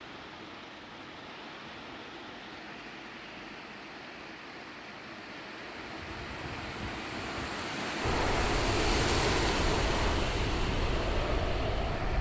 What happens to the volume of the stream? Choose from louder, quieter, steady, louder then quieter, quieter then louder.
louder.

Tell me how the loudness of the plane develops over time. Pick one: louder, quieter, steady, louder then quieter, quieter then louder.
steady.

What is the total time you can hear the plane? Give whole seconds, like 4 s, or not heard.
4 s.